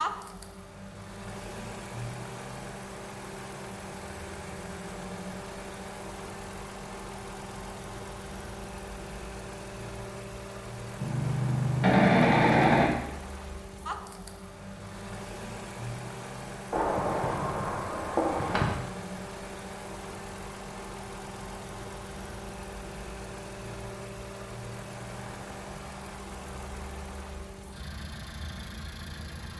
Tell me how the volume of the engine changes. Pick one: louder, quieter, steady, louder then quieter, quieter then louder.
steady.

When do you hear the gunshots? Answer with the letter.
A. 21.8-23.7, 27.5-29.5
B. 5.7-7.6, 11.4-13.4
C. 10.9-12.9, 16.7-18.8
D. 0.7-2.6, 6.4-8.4
C.